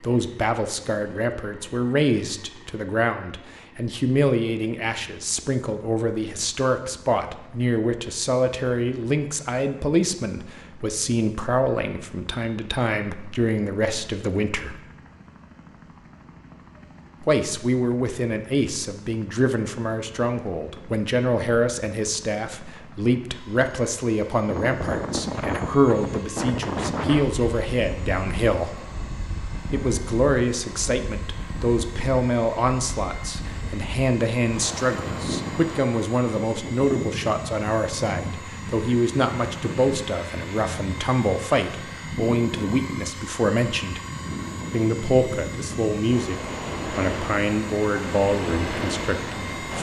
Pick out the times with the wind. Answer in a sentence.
The wind can be heard from 24.4 to 49.7 s.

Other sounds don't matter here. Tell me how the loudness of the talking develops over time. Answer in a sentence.
The loudness of the talking stays about the same.